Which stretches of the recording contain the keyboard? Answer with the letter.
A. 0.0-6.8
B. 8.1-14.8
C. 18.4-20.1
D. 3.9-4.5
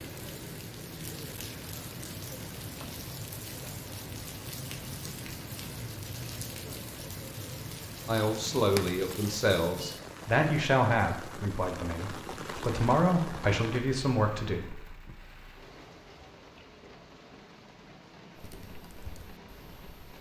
C.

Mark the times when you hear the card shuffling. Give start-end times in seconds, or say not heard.
8.7-9.3.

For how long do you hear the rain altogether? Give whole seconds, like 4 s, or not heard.
20 s.